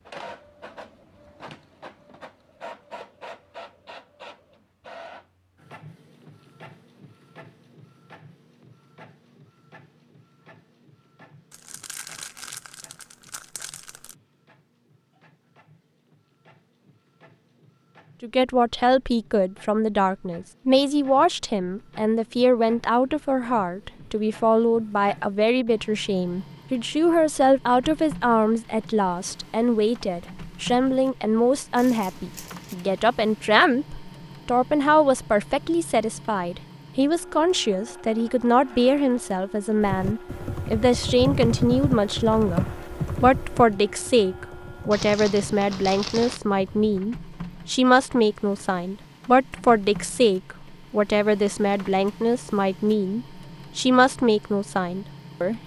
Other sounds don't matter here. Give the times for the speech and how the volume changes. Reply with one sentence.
You can hear the speech from 18.2 to 55.6 s, at a steady volume.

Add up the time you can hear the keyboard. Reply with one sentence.
The keyboard can be heard for 7 seconds in total.